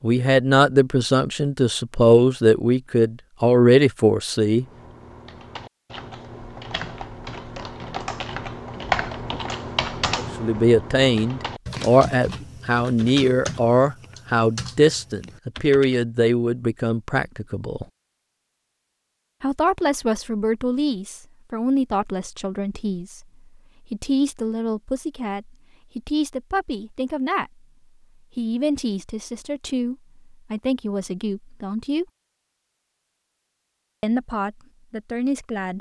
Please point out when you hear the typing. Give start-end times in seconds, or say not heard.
4.5-16.0.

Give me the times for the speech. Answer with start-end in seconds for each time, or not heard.
0.0-4.7, 10.1-17.9, 19.4-27.6, 28.4-32.0, 34.0-35.7.